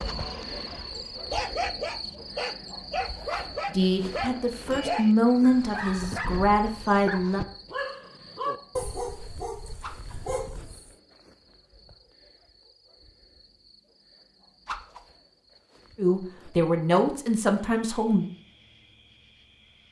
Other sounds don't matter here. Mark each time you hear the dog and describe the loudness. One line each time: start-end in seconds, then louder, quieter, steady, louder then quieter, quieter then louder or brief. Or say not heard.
0.0-10.9 steady.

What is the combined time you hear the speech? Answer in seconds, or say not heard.
6 s.